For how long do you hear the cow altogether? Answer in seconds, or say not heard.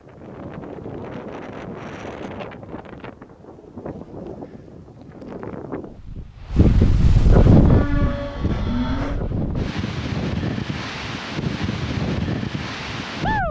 2 s.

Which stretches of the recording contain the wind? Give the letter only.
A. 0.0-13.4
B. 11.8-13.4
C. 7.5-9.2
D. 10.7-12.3
A.